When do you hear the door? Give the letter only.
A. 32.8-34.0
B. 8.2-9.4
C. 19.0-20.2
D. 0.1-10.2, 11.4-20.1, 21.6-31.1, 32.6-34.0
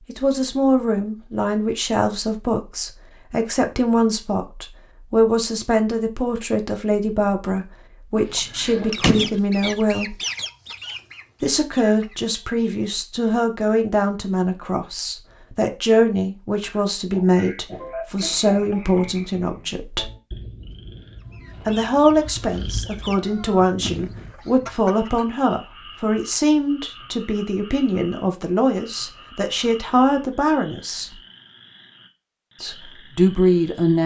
B.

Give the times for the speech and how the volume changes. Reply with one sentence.
The speech can be heard from 0.1 to 10.2 s, at a steady volume; from 11.4 to 20.1 s, at a steady volume; from 21.6 to 31.1 s, at a steady volume; and briefly from 32.6 to 34.0 s.